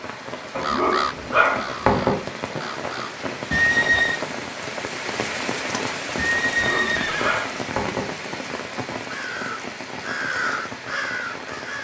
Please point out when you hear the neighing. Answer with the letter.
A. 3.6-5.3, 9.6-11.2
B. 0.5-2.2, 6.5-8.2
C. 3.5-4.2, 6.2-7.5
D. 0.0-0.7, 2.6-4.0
C.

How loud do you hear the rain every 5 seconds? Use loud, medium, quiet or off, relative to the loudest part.
loud, loud, medium.